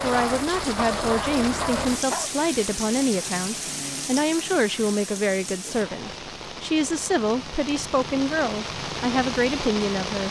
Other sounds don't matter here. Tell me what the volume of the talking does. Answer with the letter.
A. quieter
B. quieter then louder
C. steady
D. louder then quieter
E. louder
C.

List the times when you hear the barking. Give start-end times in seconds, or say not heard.
0.0-2.3.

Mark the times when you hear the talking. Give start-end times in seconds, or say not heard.
0.0-10.2.